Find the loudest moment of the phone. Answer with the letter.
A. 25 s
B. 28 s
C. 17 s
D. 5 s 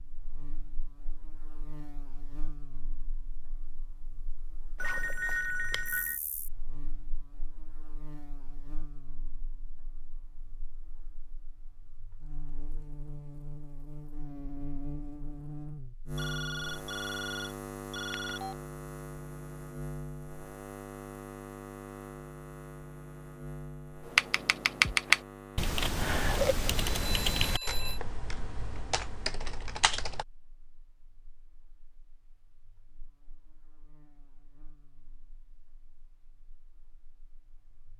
D.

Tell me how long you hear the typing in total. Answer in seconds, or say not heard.
6 s.